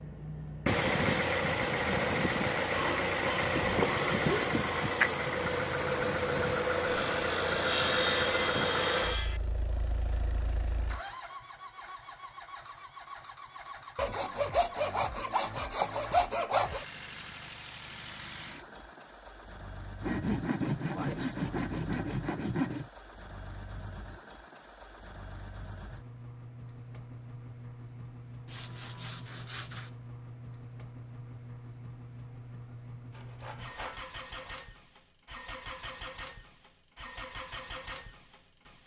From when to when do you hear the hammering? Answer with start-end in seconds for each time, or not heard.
not heard.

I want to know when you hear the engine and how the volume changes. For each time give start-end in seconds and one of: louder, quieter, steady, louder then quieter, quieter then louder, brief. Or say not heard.
0.0-38.8 quieter.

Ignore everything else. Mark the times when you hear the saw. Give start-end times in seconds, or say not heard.
2.7-4.7, 6.8-9.4, 13.9-16.9, 20.0-22.9, 28.4-29.9, 33.1-34.5.